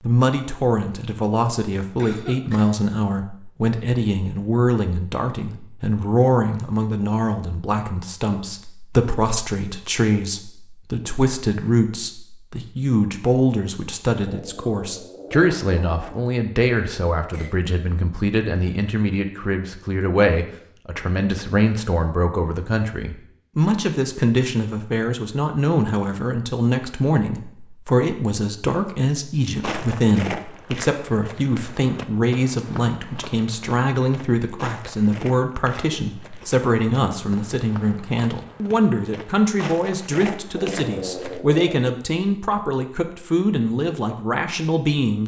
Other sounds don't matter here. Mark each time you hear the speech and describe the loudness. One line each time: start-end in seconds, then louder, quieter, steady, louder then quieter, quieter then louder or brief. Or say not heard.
0.0-45.2 steady.